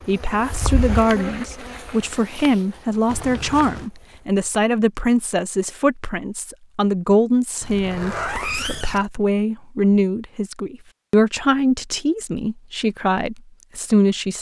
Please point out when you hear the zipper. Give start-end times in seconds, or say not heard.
3.0-3.9, 7.6-9.1.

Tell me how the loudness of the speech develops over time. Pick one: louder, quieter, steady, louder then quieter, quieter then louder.
steady.